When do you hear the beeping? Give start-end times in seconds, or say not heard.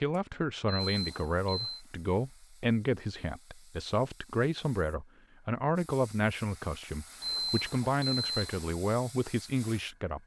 0.7-1.8, 7.2-8.8.